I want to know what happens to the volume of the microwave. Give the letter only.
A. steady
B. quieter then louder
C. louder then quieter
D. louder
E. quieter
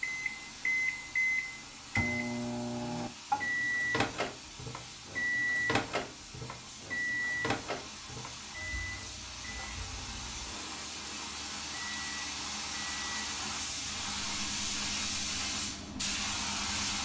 E.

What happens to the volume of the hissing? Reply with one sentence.
The volume of the hissing goes up.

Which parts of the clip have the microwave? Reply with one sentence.
You can hear the microwave from 0.0 to 17.0 s.